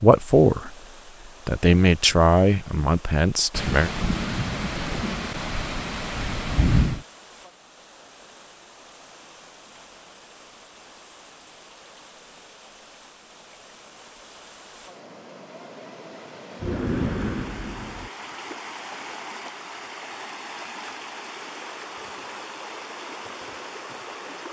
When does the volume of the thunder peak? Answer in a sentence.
The volume of the thunder peaks at 7 seconds.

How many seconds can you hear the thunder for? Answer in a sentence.
The thunder can be heard for 5 seconds in total.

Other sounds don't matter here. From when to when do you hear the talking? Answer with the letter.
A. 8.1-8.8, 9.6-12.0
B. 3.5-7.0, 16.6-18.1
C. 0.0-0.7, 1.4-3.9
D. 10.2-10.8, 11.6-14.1
C.